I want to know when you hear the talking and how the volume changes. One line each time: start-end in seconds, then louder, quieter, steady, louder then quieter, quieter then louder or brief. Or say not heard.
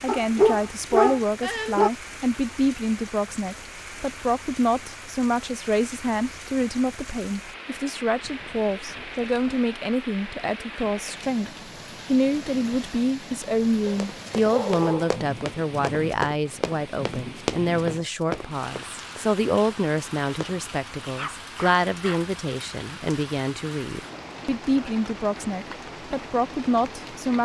0.0-27.4 steady.